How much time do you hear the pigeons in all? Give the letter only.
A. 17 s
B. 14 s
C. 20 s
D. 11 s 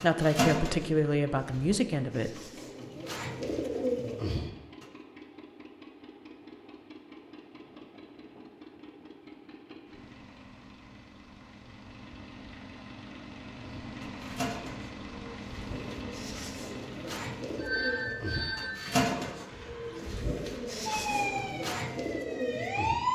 B.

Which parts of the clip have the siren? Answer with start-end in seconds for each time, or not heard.
20.9-23.1.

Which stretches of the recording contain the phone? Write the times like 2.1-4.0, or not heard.
17.6-18.9.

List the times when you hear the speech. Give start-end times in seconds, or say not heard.
0.0-2.4.